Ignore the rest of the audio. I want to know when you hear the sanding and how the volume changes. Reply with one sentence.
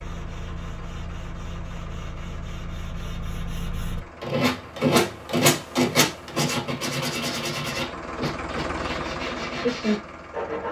You can hear the sanding from 0.0 to 10.6 s, getting louder then quieter.